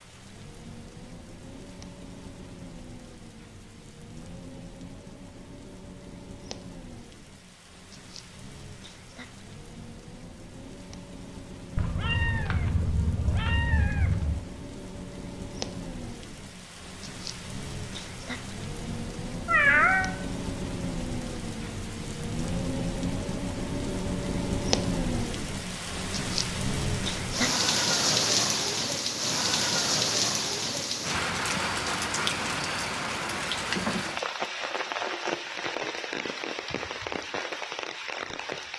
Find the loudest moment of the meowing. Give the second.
20 s.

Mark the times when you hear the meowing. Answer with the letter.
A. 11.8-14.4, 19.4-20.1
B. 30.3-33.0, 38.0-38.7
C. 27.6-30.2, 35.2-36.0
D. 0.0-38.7
A.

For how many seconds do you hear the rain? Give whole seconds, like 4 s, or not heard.
39 s.